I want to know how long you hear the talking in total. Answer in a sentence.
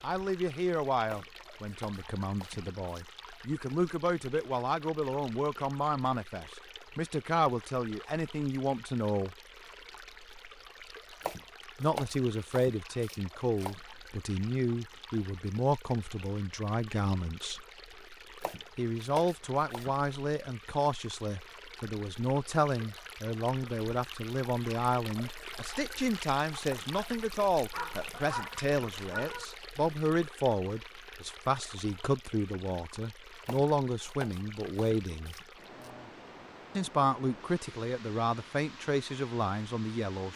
The talking can be heard for 35 seconds in total.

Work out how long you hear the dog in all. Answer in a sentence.
You can hear the dog for 2 seconds altogether.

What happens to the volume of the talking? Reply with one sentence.
The volume of the talking stays about the same.